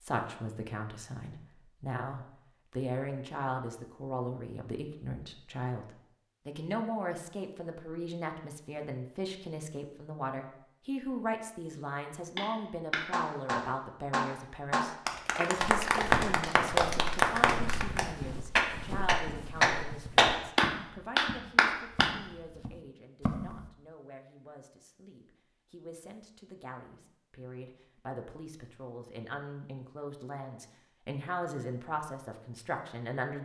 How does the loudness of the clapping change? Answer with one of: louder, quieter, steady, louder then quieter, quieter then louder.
louder.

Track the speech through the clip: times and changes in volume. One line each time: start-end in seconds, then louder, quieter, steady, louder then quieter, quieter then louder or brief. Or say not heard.
0.0-33.3 quieter then louder.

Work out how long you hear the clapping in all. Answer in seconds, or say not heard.
10 s.